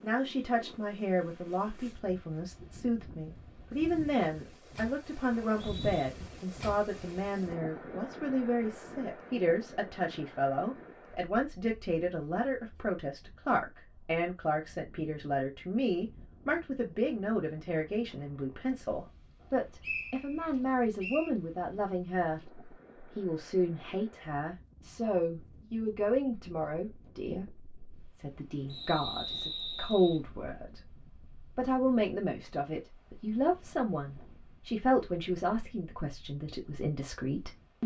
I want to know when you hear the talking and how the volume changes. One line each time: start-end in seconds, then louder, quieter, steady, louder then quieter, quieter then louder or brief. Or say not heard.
0.0-37.8 steady.